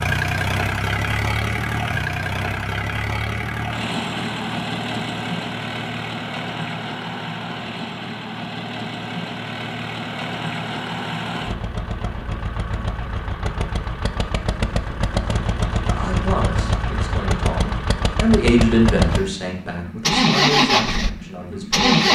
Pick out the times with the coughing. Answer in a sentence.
The coughing can't be heard in this clip.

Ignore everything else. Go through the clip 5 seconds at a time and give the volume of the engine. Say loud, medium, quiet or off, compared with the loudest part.
medium, medium, medium, medium, loud.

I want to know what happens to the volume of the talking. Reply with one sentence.
The loudness of the talking goes up, then down.